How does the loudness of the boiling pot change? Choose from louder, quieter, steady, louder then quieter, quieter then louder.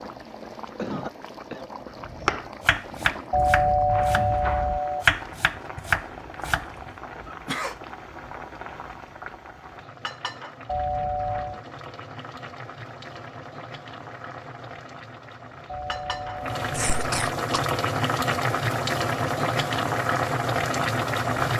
louder.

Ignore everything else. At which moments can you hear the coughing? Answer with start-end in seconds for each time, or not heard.
0.6-1.6, 7.2-7.8, 16.7-17.6.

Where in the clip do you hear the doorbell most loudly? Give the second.
4 s.